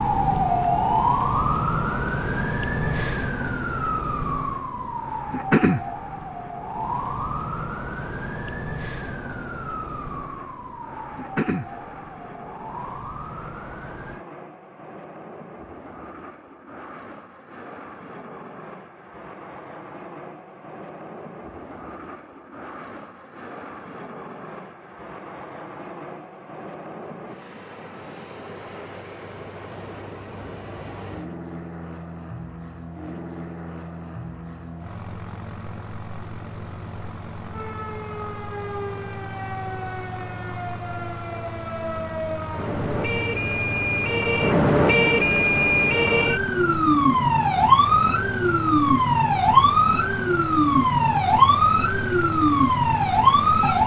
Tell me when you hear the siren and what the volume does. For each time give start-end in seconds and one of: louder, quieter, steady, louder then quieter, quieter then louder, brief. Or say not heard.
0.0-14.2 quieter
37.5-53.8 louder.